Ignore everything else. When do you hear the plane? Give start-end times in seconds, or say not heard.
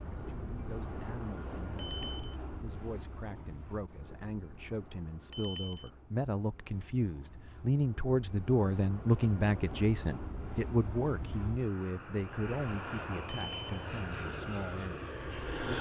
0.0-15.7.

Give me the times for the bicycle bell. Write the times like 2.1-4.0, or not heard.
1.8-2.4, 5.3-5.9, 13.2-13.8.